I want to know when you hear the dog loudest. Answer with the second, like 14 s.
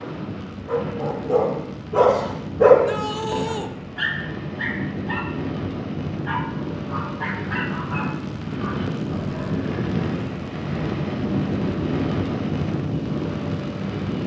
3 s.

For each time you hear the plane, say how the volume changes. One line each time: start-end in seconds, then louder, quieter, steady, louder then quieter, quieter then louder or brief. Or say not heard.
0.0-14.2 louder.